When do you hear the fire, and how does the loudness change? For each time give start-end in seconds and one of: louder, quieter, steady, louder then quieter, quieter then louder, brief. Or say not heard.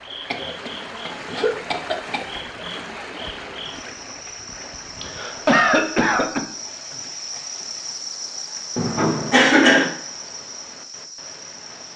not heard.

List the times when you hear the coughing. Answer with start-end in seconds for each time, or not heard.
0.3-2.2, 5.0-6.4, 8.8-9.9.